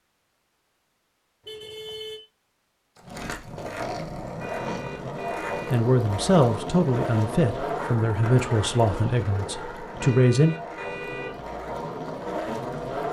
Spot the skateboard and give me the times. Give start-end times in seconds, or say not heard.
3.0-13.0.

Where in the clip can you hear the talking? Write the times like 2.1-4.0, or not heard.
5.7-10.6.